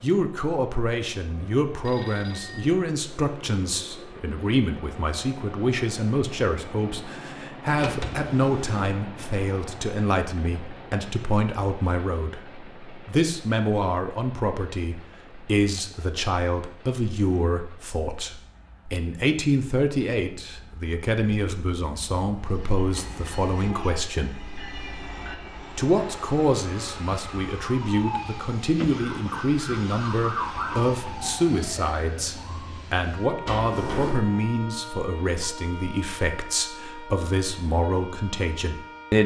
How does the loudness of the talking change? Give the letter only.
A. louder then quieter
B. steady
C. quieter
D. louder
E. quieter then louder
B.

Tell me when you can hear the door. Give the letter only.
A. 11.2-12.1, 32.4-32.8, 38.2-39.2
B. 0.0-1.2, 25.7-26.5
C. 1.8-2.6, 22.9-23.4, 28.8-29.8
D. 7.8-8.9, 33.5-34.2
D.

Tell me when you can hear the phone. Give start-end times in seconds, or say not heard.
1.8-2.6, 22.9-23.4, 28.8-29.8.